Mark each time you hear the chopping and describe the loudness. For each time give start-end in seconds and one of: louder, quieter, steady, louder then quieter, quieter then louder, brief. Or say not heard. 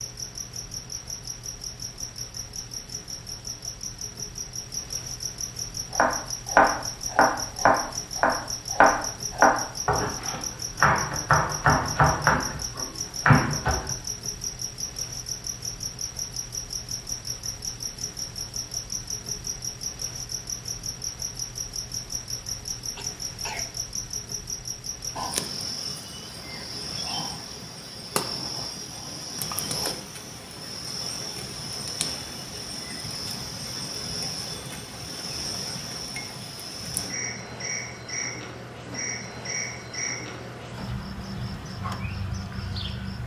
5.9-13.9 steady.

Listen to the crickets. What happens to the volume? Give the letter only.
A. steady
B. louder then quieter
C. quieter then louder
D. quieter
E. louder
A.